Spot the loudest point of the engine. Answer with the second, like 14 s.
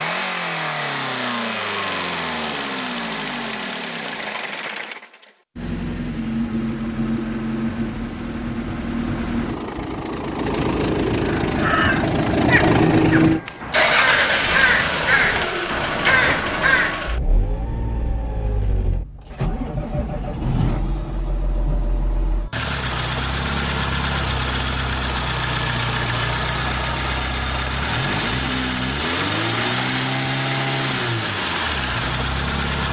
13 s.